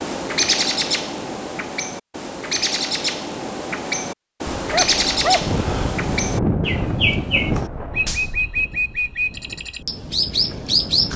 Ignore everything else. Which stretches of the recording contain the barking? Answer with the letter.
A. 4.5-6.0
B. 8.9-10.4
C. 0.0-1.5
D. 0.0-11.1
A.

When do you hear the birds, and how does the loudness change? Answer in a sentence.
You can hear the birds from 0.0 to 11.1 s, at a steady volume.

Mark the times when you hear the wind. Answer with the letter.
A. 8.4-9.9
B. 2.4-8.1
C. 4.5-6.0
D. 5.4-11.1
D.